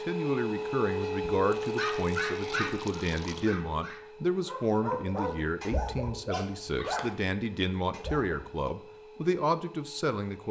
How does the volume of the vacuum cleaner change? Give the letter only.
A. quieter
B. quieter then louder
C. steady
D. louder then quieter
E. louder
A.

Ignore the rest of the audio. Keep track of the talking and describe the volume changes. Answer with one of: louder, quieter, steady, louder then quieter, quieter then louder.
steady.